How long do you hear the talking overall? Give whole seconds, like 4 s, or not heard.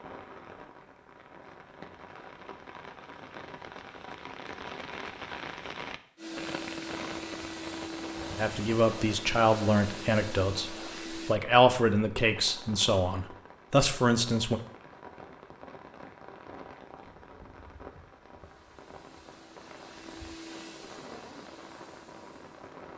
6 s.